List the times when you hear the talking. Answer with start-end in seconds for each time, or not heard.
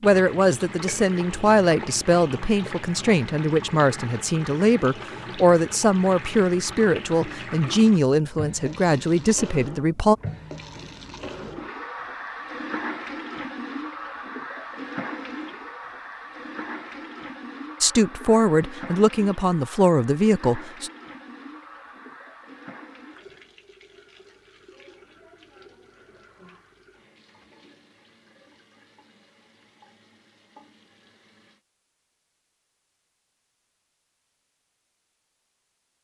0.0-10.2, 17.8-20.9.